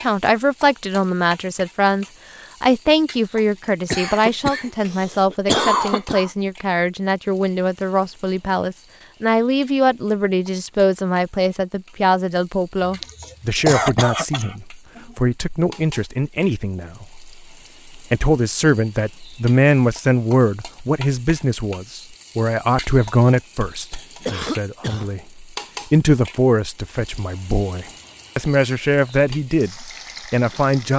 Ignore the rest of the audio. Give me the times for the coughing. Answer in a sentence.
The coughing can be heard from 3.9 to 6.3 s, from 12.8 to 15.2 s and from 24.2 to 25.1 s.